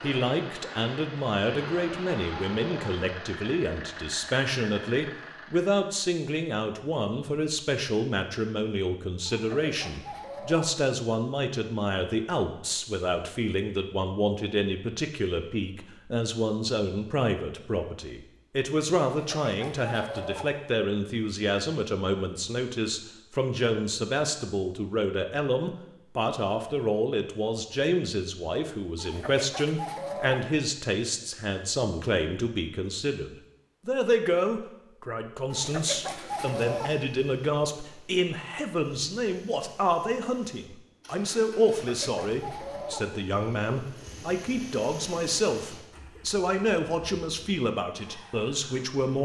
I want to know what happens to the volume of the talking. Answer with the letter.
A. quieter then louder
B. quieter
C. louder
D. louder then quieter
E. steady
E.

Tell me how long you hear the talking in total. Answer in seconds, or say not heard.
49 s.